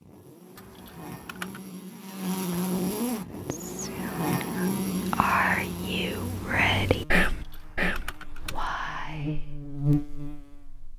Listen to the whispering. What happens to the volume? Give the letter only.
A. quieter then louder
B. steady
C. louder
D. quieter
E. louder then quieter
E.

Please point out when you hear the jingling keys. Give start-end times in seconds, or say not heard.
0.6-1.6, 7.2-8.7.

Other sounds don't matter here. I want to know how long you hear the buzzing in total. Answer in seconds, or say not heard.
11 s.